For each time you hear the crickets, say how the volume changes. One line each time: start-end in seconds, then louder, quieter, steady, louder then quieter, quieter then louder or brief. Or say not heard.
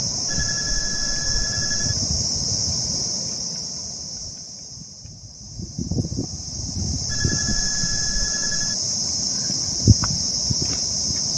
0.0-11.3 quieter then louder.